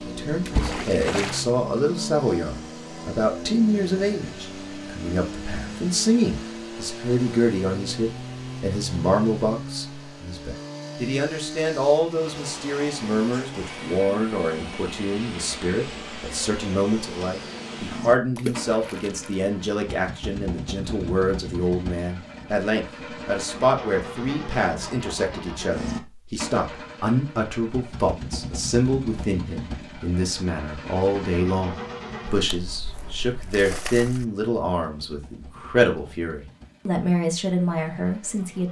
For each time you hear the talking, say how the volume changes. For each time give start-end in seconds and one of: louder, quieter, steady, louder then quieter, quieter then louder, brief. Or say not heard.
0.1-38.6 steady.